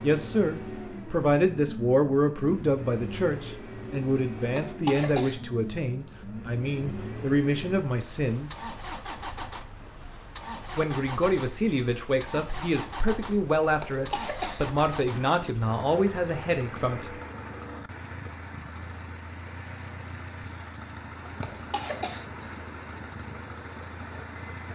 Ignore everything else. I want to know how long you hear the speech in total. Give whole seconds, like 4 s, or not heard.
15 s.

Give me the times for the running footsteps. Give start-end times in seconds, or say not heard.
not heard.